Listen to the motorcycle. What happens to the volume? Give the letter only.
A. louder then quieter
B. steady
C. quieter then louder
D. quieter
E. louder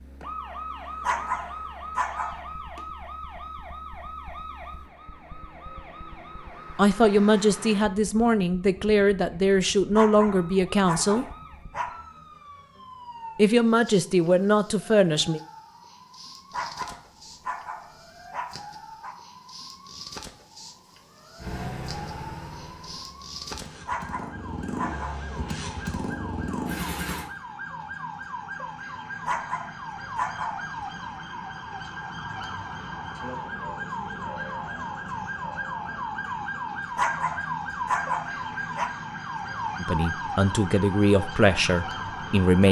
C.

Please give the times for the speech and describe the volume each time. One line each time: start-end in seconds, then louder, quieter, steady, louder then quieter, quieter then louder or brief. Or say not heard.
6.8-11.2 steady
13.3-15.4 brief
39.8-42.6 brief.